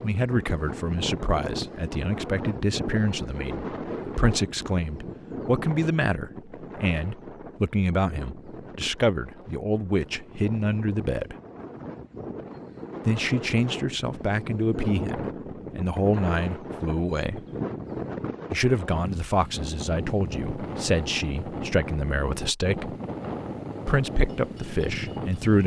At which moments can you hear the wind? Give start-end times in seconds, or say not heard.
0.0-25.6.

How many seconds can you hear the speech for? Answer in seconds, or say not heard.
22 s.